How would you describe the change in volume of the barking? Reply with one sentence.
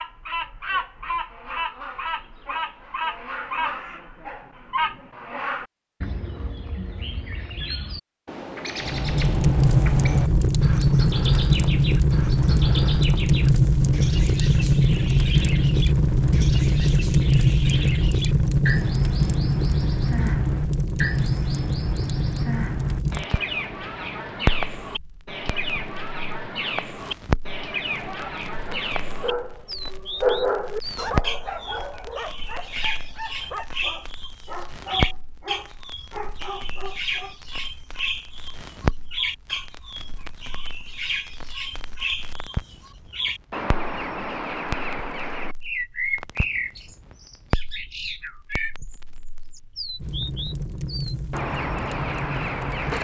The loudness of the barking goes down.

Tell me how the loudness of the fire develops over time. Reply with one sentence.
The volume of the fire goes down.